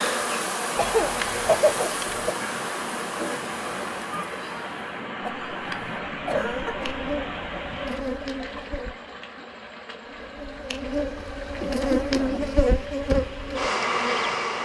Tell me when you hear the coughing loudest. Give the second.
2 s.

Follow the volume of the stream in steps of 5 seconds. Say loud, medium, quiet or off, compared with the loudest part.
loud, loud, medium.